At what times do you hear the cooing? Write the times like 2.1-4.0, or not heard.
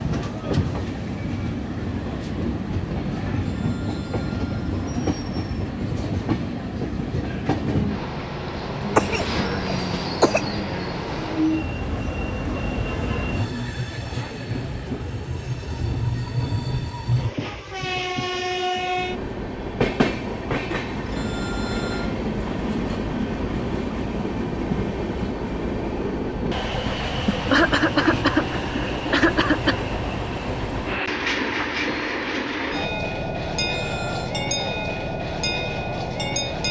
not heard.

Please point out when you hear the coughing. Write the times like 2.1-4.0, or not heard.
8.9-10.5, 27.2-29.8.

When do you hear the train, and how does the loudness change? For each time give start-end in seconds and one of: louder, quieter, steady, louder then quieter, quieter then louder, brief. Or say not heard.
0.0-36.6 steady.